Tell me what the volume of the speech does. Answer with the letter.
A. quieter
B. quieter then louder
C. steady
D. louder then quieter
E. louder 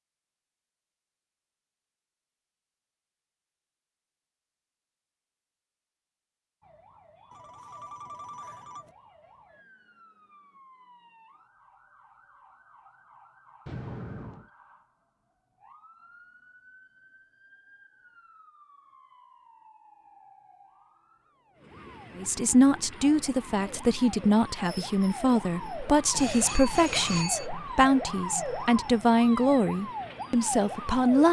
C.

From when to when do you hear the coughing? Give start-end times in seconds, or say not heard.
not heard.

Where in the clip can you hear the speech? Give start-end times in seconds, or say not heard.
22.1-31.2.